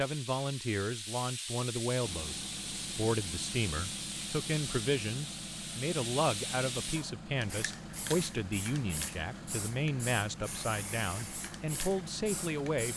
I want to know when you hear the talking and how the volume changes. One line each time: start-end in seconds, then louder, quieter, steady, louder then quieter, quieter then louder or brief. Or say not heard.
0.0-12.9 steady.